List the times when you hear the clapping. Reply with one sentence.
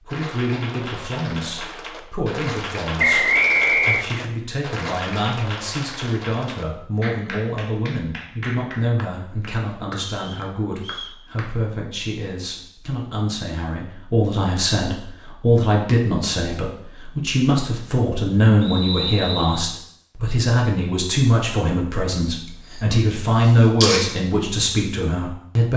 The clapping can be heard from 0.1 to 11.5 s.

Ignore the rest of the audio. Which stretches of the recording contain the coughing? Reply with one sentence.
You can hear the coughing from 22.7 to 24.2 s.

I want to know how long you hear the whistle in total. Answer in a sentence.
You can hear the whistle for 3 seconds altogether.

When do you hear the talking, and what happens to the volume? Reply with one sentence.
The talking can be heard from 0.0 to 25.7 s, getting louder.